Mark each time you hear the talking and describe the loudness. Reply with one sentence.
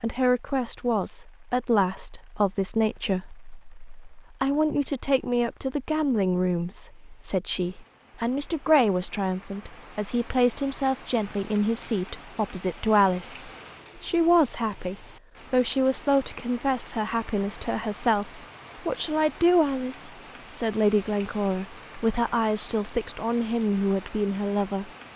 The talking can be heard from 0.0 to 24.9 s, at a steady volume.